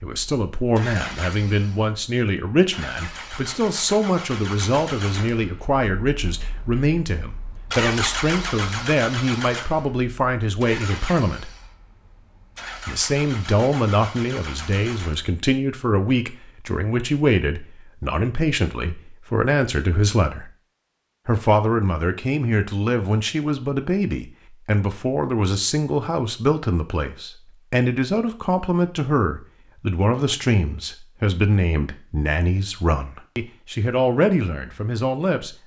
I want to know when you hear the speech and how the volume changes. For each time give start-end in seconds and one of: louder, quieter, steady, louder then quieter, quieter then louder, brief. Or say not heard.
0.0-11.5 steady
12.8-20.5 steady
21.2-35.5 steady.